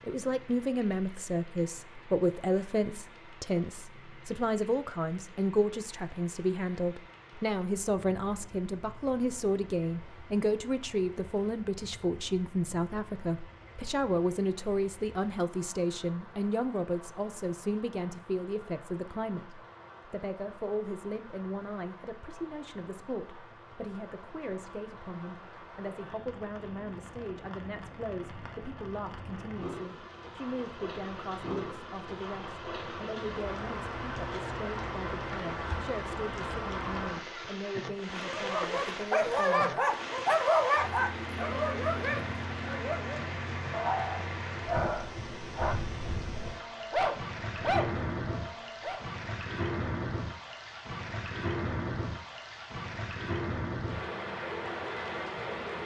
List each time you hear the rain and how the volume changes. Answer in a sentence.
You can hear the rain from 0.0 to 55.8 s, getting louder.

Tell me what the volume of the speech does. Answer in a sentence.
The loudness of the speech goes down.